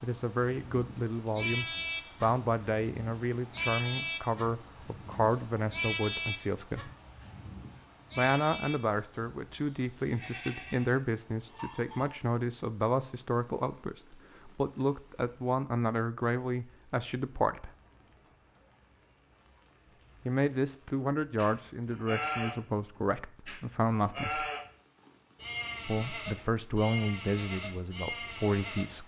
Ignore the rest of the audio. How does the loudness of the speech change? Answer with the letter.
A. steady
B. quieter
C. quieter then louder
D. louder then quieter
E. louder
A.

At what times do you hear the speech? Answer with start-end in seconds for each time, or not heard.
0.0-6.9, 8.2-17.7, 20.2-24.5, 25.9-29.0.